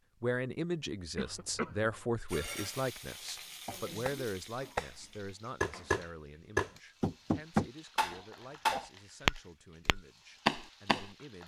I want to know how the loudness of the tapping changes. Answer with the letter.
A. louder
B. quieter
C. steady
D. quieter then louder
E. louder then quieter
A.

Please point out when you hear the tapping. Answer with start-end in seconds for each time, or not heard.
3.6-11.1.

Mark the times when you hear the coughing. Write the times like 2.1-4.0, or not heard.
1.1-1.9, 8.1-8.9.